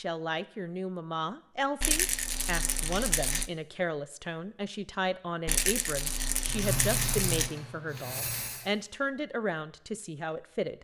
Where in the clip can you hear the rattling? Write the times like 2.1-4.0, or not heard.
1.8-3.5, 5.5-7.5.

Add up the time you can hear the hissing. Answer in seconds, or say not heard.
2 s.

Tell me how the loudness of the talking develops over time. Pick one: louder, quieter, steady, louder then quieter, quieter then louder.
steady.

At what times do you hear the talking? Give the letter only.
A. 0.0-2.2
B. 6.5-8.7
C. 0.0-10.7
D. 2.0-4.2
C.